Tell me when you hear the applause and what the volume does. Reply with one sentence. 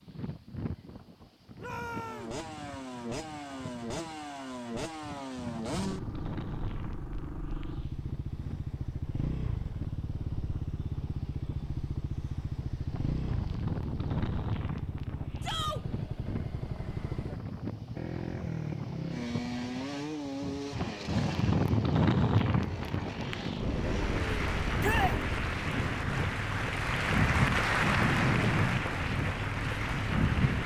You can hear the applause from 23.7 to 30.6 s, getting louder then quieter.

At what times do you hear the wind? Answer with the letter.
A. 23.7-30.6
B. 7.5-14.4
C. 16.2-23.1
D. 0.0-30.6
D.